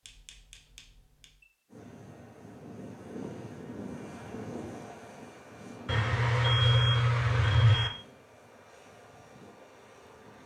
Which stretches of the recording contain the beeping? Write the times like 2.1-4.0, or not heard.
0.1-1.2, 5.8-7.9.